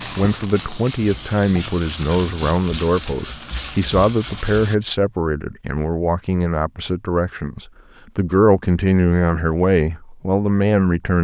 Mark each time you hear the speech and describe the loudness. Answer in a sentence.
You can hear the speech from 0.0 to 11.2 s, at a steady volume.